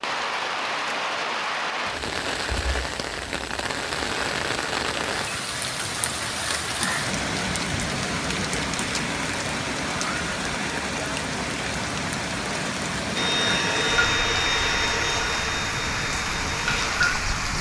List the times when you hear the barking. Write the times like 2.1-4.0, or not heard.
not heard.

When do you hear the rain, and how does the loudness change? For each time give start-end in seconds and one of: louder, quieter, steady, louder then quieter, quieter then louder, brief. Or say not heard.
0.0-17.5 steady.